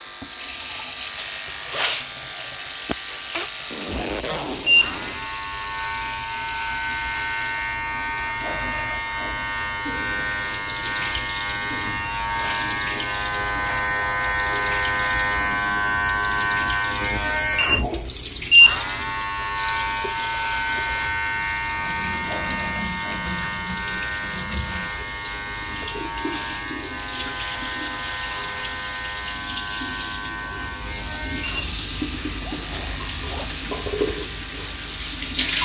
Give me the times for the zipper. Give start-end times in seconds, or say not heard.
3.7-5.2, 32.4-33.5.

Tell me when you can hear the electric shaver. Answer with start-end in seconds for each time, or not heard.
0.0-35.6.